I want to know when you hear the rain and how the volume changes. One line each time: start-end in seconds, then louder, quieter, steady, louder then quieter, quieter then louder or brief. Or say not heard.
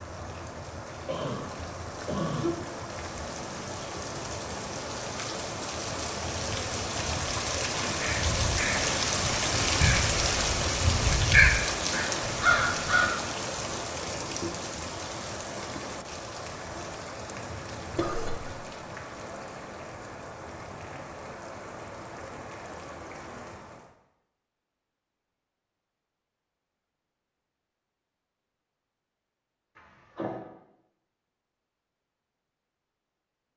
0.0-23.9 louder then quieter.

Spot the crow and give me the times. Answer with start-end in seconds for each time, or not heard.
7.7-13.1.